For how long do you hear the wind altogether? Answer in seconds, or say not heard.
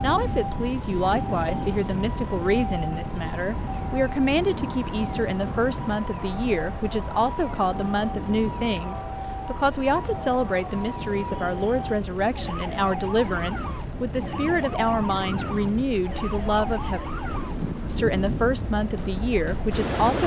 20 s.